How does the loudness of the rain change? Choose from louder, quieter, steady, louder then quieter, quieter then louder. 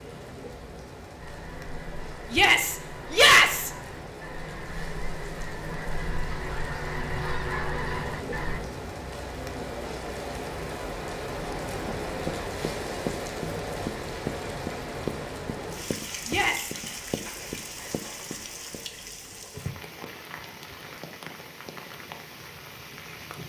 louder then quieter.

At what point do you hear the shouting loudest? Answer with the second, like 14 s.
3 s.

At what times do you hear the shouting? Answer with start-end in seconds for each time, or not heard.
2.3-3.7, 16.2-16.8.